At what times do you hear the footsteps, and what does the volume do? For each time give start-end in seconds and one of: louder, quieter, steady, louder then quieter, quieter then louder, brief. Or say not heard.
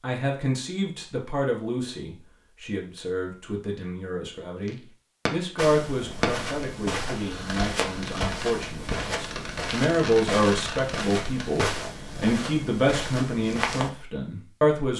5.5-13.9 steady.